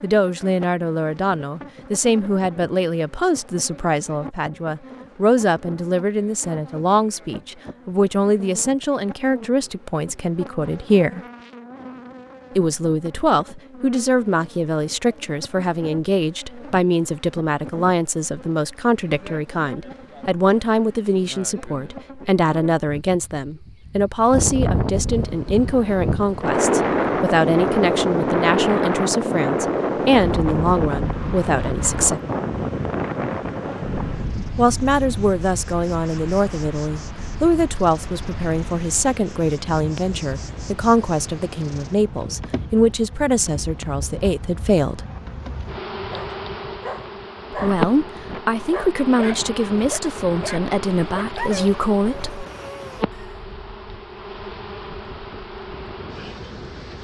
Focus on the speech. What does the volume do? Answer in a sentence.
The volume of the speech stays about the same.